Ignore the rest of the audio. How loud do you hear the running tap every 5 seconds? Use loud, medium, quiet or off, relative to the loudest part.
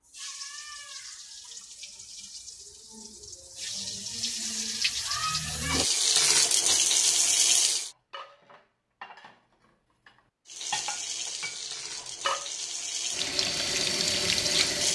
quiet, loud, medium.